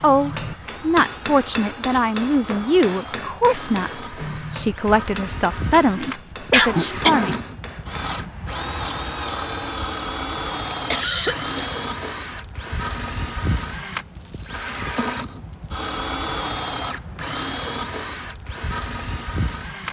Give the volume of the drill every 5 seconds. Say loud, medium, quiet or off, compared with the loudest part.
medium, loud, loud, loud.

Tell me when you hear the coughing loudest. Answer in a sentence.
The loudest moment of the coughing is at 7 seconds.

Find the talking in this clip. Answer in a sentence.
The talking can be heard from 0.0 to 7.5 s.